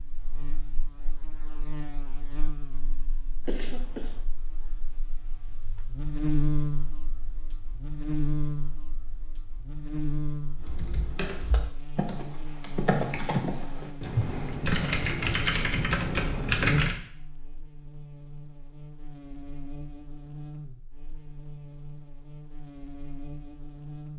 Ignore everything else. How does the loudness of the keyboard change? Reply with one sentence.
The volume of the keyboard goes up.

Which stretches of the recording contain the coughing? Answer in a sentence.
You can hear the coughing from 3.5 to 4.2 s.